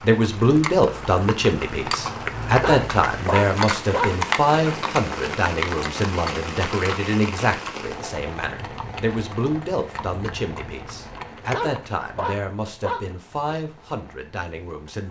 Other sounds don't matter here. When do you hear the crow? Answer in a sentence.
The crow can't be heard in this clip.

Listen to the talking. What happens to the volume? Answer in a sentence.
The volume of the talking goes down.